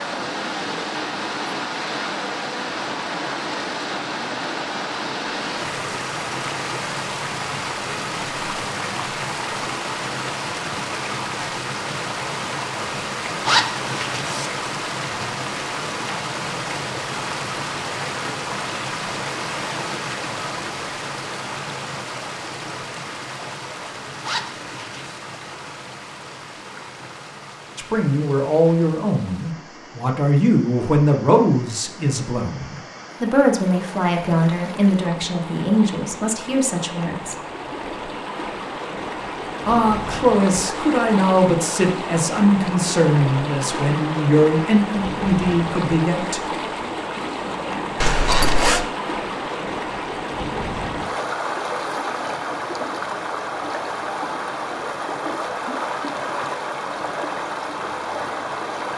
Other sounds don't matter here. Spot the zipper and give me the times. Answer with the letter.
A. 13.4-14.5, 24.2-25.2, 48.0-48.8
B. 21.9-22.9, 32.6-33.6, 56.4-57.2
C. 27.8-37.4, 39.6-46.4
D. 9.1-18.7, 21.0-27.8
A.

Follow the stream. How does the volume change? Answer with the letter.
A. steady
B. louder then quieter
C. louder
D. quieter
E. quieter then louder
E.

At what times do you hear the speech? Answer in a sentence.
You can hear the speech from 27.8 to 37.4 s and from 39.6 to 46.4 s.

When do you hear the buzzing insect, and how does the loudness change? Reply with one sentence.
The buzzing insect can't be heard in this clip.